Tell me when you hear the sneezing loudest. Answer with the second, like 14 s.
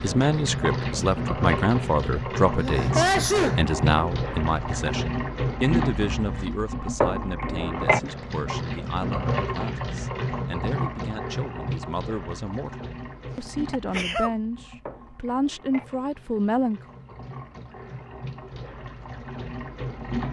3 s.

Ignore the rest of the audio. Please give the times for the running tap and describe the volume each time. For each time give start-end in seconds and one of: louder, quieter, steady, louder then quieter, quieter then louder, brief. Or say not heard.
0.0-20.2 quieter.